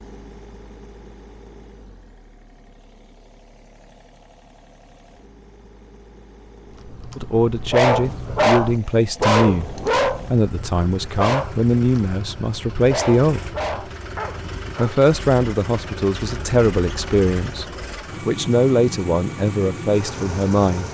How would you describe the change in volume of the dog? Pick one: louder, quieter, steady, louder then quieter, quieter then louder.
quieter.